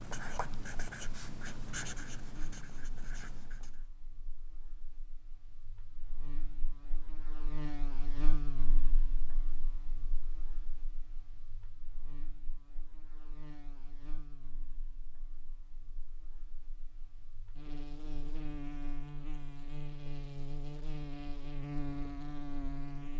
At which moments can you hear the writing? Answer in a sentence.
You can hear the writing from 0.0 to 3.9 s.